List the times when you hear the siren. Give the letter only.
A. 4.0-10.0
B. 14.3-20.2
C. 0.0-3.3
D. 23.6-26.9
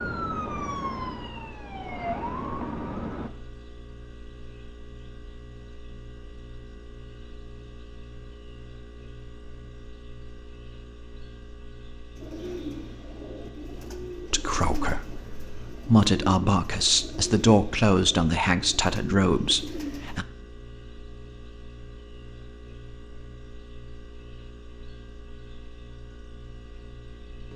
C.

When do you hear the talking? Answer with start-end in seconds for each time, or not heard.
14.3-20.2.